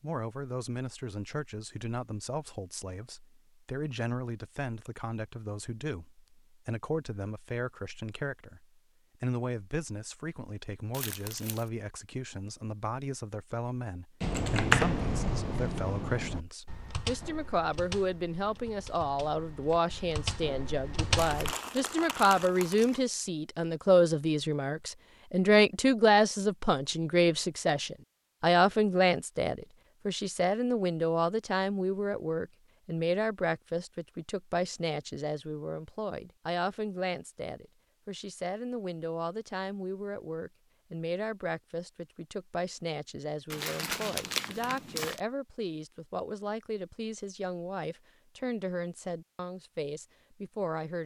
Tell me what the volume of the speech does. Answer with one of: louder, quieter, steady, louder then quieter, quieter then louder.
louder then quieter.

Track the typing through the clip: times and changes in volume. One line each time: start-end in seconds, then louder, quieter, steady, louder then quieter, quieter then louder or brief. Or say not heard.
14.2-21.6 quieter then louder.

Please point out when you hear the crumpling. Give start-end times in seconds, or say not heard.
10.9-11.7, 21.1-23.0, 43.5-45.2.